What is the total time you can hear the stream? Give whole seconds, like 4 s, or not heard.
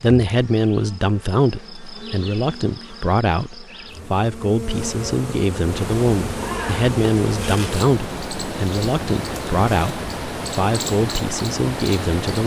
7 s.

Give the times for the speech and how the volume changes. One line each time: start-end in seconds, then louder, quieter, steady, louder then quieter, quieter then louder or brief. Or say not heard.
0.0-12.4 steady.